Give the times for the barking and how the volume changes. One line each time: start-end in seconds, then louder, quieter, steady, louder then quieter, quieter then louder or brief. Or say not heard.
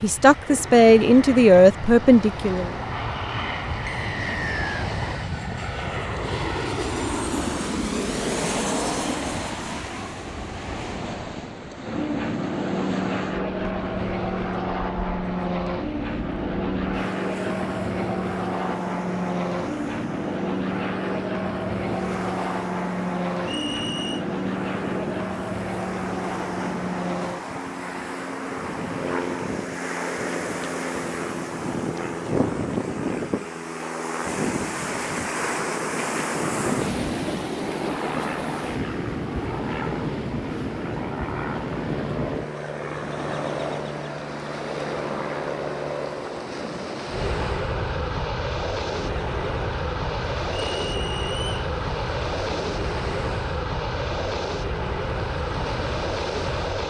not heard.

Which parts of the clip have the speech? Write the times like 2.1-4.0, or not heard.
0.0-2.8.